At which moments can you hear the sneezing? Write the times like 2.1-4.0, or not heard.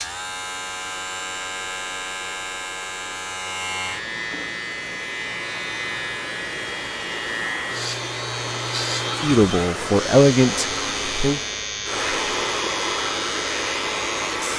not heard.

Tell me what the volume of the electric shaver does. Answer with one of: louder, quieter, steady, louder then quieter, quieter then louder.
steady.